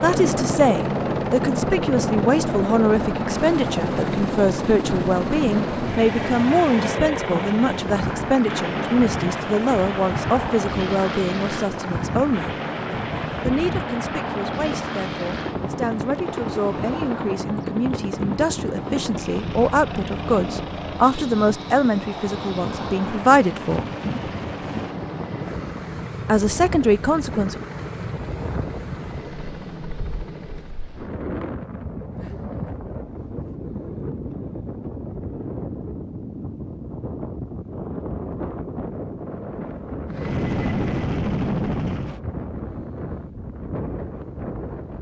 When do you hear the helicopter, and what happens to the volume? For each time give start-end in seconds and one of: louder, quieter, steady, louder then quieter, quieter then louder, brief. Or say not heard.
0.0-30.8 quieter
40.0-42.2 brief.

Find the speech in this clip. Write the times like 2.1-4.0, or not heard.
0.0-12.6, 13.4-23.9, 26.2-27.6.